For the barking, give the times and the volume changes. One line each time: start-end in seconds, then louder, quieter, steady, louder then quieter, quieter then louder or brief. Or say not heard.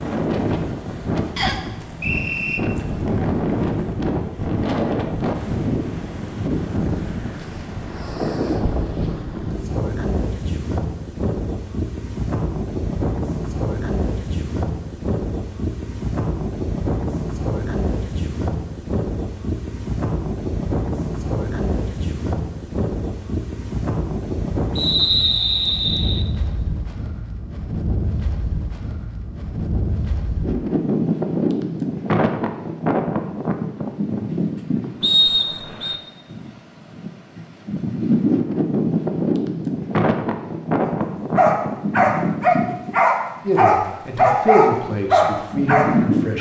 40.8-46.3 steady.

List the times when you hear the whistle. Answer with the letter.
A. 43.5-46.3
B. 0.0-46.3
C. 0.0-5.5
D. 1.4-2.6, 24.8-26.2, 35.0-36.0
D.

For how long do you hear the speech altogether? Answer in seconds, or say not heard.
3 s.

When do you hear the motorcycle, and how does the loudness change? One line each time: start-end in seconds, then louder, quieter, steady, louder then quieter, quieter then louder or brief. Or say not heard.
not heard.